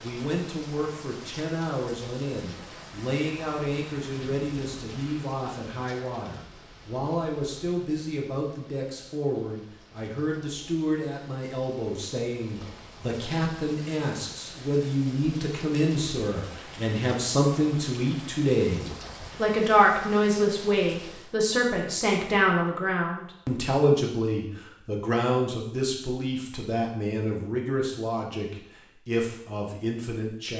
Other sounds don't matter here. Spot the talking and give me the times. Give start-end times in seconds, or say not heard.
0.0-30.5.